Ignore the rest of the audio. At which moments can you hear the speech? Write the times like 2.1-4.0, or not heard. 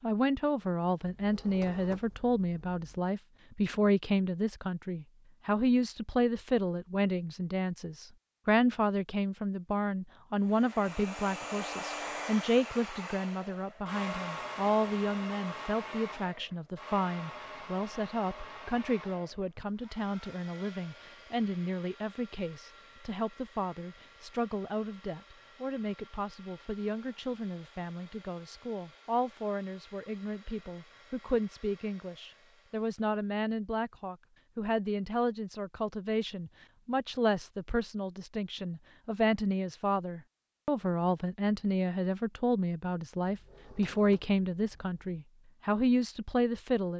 0.0-46.9.